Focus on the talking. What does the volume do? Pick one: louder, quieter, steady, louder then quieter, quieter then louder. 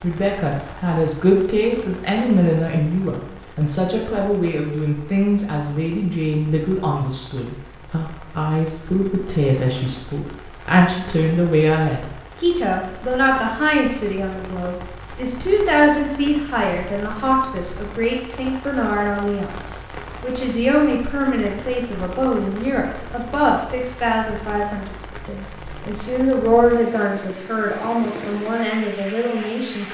steady.